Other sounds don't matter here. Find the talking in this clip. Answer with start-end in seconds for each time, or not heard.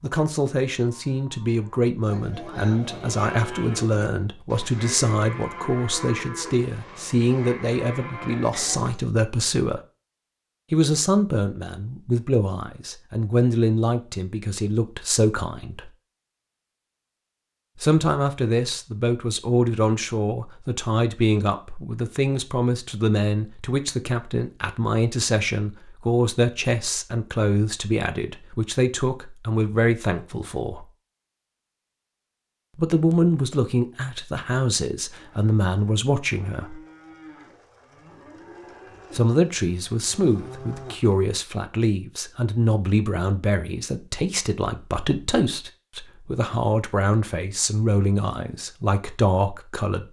0.0-9.8, 10.7-15.9, 17.8-30.9, 32.8-36.8, 39.1-50.0.